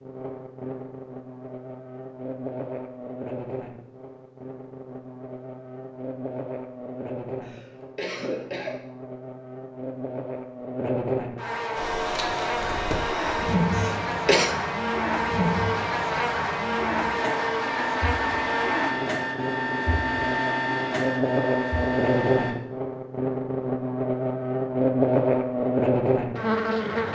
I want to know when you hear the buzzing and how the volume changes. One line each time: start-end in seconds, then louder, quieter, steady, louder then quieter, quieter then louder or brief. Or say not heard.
0.0-27.1 louder.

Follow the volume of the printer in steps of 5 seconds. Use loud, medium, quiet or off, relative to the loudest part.
off, off, loud, loud, loud, off.